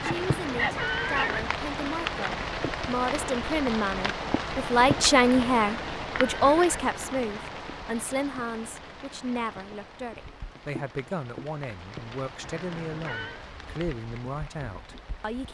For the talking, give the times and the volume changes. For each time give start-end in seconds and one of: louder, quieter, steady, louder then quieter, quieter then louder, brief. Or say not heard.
0.0-15.4 louder then quieter.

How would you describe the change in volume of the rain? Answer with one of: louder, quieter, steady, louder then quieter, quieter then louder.
quieter.